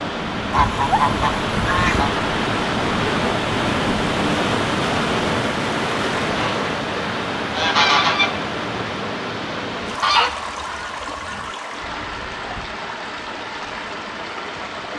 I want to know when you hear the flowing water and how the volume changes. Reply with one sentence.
You can hear the flowing water from 0.0 to 14.9 s, getting quieter.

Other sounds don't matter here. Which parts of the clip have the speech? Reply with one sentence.
The speech can't be heard in this clip.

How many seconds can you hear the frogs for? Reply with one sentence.
The frogs can't be heard in this clip.